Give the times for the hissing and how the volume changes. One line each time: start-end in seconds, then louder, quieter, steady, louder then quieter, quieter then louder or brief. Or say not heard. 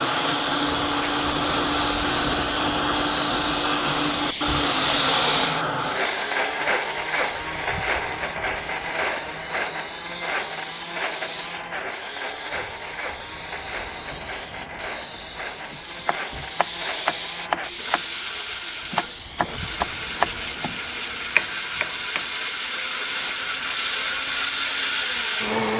0.0-25.7 quieter.